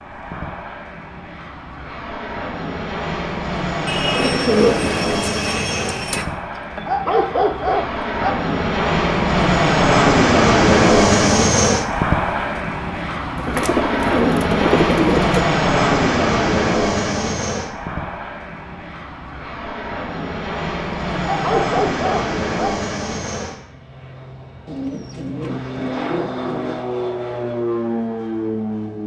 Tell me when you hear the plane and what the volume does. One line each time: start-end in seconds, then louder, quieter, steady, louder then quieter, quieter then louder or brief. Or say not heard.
0.0-29.0 louder then quieter.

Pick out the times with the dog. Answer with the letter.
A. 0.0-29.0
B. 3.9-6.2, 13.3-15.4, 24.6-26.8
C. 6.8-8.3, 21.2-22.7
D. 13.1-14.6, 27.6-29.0
C.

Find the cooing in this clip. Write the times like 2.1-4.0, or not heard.
3.9-6.2, 13.3-15.4, 24.6-26.8.